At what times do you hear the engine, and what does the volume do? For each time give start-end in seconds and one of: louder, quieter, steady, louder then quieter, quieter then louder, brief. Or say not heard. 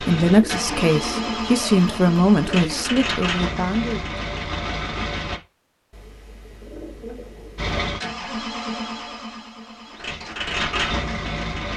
0.0-5.4 steady
7.5-11.7 quieter then louder.